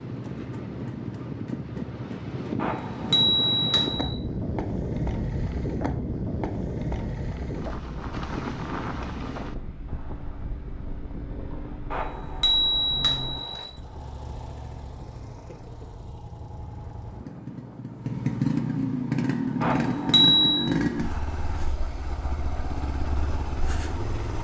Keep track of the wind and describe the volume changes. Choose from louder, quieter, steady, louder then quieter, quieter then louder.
quieter.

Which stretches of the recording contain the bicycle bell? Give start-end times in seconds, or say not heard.
2.6-4.1, 11.9-13.7, 19.6-20.6.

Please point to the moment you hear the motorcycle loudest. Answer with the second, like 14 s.
19 s.